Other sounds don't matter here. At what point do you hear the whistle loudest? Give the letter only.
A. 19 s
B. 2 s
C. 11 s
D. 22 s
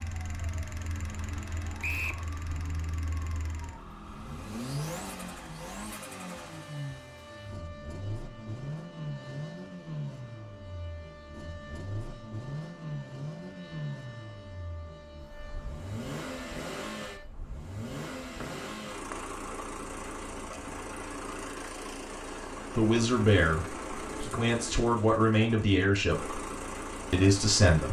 B.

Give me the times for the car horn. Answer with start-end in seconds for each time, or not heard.
not heard.